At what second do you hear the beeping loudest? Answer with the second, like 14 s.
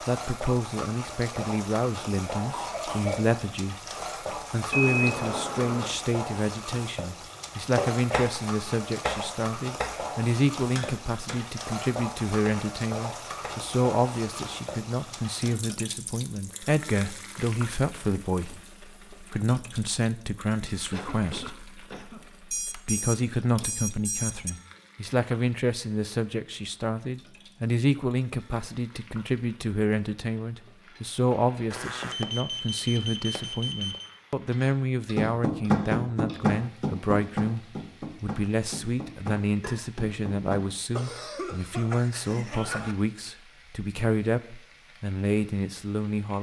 5 s.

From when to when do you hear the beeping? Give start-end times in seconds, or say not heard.
4.7-5.9, 22.5-24.5, 31.7-34.1.